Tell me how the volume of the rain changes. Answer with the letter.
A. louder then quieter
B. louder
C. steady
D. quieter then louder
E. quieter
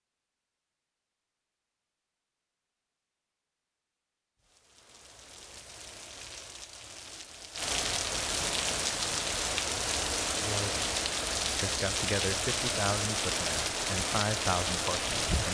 B.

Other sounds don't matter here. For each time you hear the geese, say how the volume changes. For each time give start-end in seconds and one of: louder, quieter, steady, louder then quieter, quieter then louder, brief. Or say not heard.
not heard.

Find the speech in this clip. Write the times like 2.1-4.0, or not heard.
10.4-10.8, 11.6-15.4.